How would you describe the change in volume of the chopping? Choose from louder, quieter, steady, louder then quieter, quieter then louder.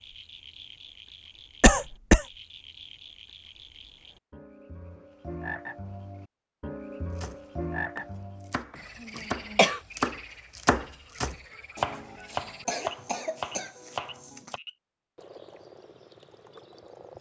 louder then quieter.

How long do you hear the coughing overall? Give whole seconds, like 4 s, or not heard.
3 s.